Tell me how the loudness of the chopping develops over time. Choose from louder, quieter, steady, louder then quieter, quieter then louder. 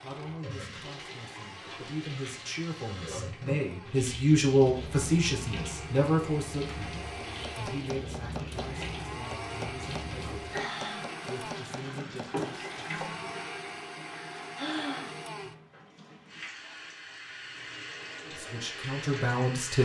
steady.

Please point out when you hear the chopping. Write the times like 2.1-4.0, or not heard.
7.2-13.2.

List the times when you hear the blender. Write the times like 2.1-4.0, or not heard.
0.0-15.6.